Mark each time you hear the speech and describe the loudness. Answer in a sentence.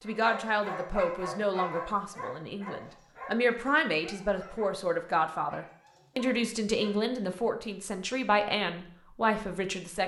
The speech can be heard from 0.0 to 10.0 s, at a steady volume.